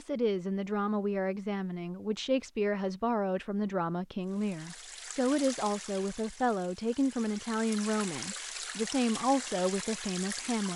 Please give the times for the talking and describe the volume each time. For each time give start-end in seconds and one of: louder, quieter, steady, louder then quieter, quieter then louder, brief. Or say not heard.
0.0-10.7 steady.